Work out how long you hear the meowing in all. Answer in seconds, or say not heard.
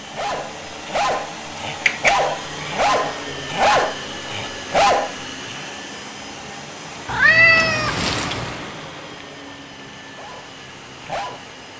2 s.